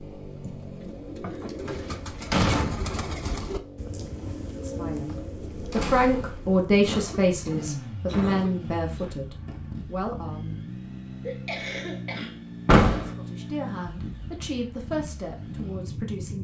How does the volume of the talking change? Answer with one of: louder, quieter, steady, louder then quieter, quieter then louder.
quieter.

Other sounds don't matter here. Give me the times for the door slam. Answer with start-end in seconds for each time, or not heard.
1.6-3.0, 5.7-6.6, 12.7-13.2.